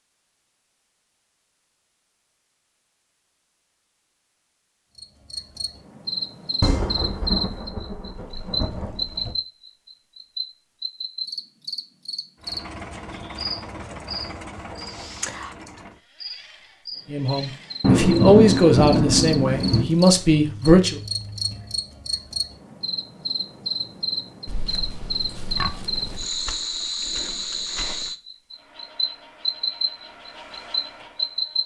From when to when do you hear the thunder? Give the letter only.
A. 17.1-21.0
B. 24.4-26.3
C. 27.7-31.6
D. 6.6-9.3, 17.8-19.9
D.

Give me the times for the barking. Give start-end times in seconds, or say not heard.
not heard.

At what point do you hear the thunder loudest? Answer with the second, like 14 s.
18 s.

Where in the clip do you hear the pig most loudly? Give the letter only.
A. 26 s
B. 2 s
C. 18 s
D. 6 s
A.